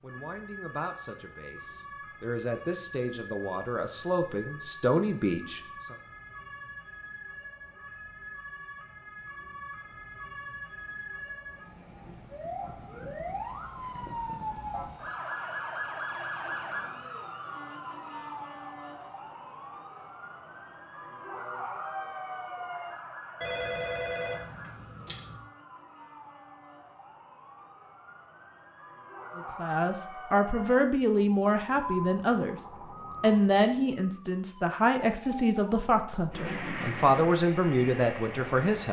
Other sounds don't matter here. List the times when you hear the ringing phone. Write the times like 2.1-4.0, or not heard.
23.4-25.4.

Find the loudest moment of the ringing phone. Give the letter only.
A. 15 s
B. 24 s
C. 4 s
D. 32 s
B.